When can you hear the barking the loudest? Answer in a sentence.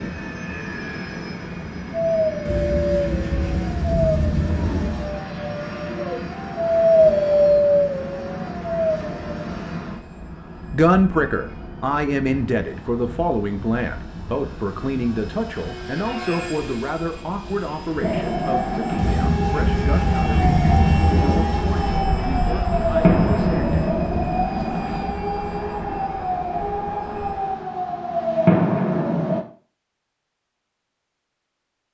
The loudest moment of the barking is at 7 seconds.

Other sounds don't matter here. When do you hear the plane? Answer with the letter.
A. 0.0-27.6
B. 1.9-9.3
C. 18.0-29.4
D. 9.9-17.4
A.